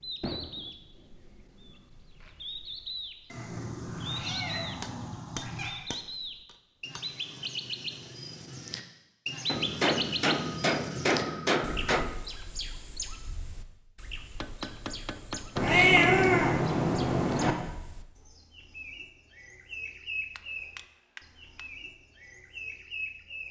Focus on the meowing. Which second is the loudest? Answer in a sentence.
The loudest moment of the meowing is at 16 seconds.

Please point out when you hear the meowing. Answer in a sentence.
The meowing can be heard from 3.3 to 5.8 s and from 15.6 to 17.6 s.